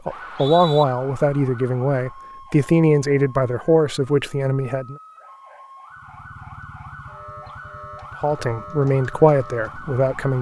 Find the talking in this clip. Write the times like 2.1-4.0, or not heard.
0.1-5.0, 8.2-10.3.